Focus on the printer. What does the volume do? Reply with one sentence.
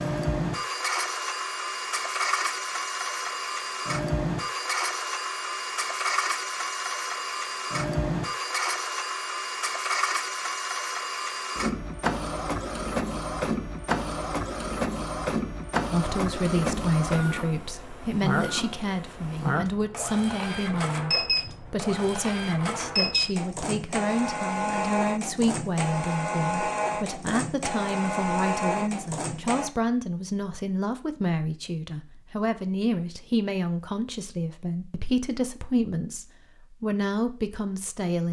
The volume of the printer stays about the same.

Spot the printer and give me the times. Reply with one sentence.
The printer can be heard from 0.0 to 29.7 s.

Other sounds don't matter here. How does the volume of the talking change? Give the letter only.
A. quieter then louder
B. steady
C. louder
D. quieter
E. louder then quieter
B.